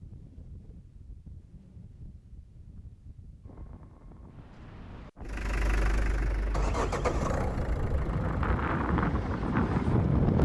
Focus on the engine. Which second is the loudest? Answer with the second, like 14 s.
7 s.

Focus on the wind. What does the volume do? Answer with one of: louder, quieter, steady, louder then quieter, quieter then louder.
louder.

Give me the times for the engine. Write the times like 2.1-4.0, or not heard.
5.2-10.4.